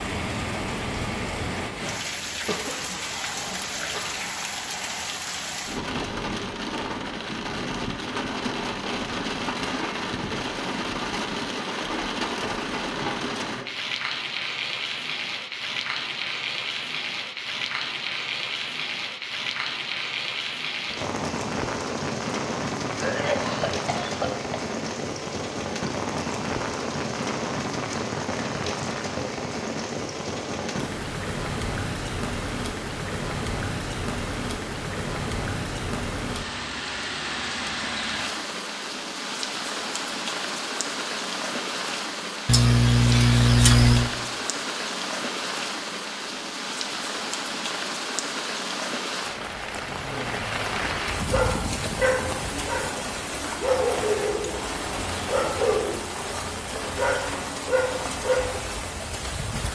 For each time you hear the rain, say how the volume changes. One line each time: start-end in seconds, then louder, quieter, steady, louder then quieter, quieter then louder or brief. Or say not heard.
0.0-59.7 steady.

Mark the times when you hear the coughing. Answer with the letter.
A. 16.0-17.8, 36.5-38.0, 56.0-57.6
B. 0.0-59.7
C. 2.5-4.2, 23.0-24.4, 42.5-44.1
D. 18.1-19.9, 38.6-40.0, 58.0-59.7
C.